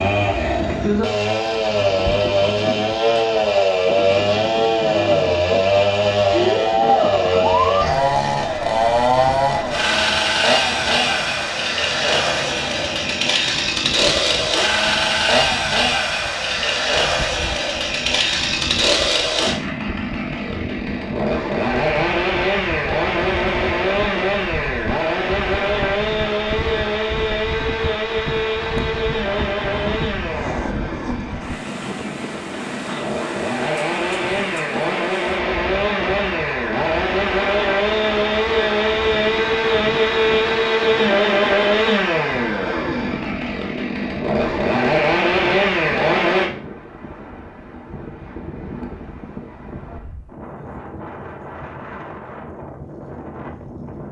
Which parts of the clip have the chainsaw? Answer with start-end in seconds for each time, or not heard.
0.0-46.5.